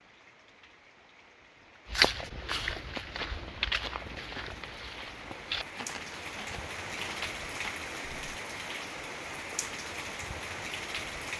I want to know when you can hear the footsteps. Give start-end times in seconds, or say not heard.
1.9-8.3.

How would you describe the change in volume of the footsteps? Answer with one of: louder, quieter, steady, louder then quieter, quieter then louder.
quieter.